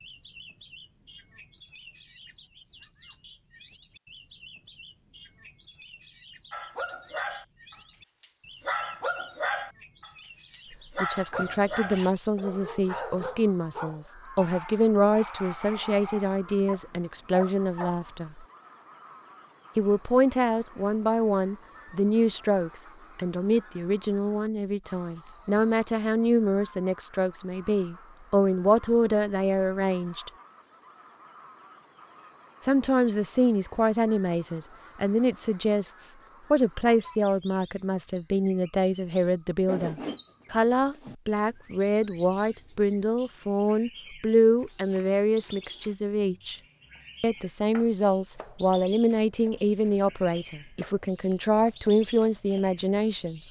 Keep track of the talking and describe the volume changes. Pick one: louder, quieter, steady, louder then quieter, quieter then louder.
steady.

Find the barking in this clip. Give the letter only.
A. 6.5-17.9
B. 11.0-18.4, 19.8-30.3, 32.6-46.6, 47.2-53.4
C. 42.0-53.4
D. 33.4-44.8
A.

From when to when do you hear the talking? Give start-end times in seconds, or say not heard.
11.0-18.4, 19.8-30.3, 32.6-46.6, 47.2-53.4.